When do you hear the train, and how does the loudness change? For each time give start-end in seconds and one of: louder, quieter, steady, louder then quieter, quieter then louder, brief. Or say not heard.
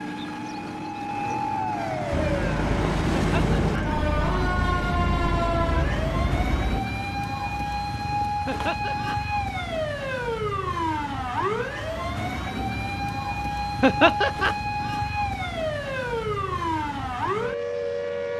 2.1-6.8 steady.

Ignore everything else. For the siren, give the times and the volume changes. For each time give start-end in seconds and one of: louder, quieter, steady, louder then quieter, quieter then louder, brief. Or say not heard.
0.0-18.3 steady.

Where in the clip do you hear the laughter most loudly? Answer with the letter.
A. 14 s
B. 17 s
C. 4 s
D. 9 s
A.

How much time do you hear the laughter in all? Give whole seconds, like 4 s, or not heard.
2 s.